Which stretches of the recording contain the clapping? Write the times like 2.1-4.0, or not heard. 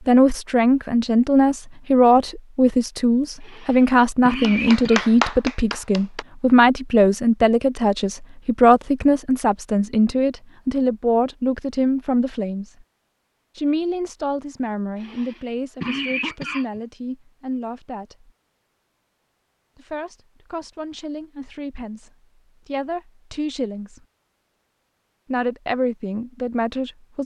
4.4-6.2.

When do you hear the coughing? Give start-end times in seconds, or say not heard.
3.4-5.0, 14.9-16.8.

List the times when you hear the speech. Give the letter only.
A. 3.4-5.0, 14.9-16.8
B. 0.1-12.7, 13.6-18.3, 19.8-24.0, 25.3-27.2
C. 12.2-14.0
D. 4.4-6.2
B.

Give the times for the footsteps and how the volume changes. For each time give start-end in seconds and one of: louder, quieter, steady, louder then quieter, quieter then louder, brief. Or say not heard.
not heard.